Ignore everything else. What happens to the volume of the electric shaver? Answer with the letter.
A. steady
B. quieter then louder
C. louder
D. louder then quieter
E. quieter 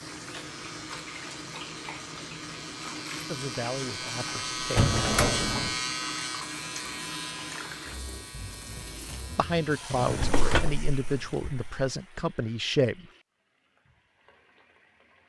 D.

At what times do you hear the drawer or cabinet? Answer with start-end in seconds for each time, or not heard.
4.8-5.8, 9.9-11.8.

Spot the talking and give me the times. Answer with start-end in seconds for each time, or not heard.
3.2-5.0, 9.3-13.1.